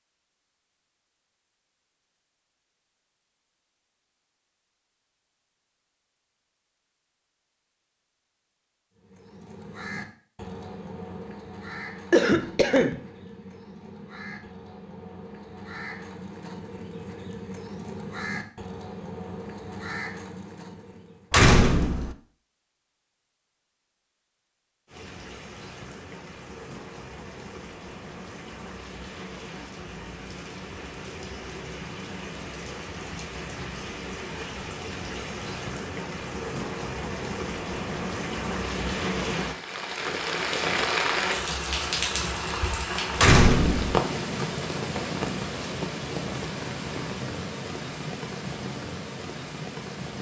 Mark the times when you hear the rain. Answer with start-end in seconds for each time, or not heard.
24.9-50.1.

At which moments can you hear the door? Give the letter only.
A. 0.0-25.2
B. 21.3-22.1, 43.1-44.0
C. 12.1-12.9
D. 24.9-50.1
B.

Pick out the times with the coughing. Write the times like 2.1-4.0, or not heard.
12.1-12.9.